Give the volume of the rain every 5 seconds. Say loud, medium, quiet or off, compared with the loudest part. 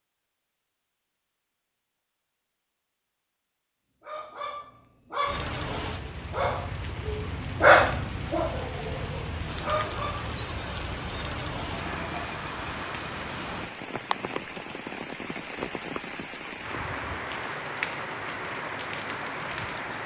off, loud, loud, loud.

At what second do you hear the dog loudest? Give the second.
8 s.